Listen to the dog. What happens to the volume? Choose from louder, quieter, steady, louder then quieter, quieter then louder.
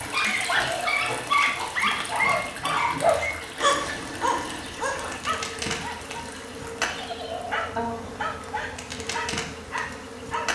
quieter.